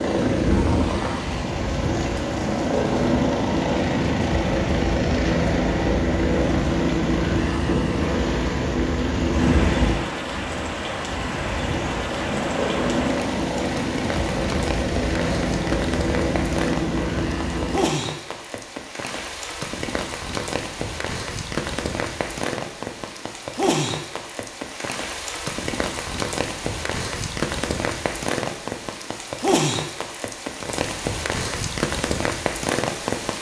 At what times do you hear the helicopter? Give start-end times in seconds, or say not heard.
0.0-17.9.